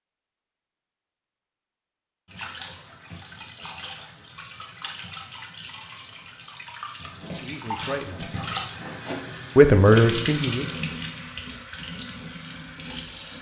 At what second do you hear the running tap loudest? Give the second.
10 s.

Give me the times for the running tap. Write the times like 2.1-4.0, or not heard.
2.2-13.3.